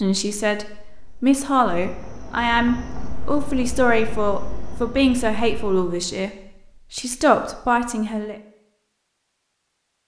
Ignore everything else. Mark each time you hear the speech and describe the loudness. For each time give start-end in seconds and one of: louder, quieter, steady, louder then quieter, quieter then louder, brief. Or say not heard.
0.0-6.3 steady
6.9-8.3 brief.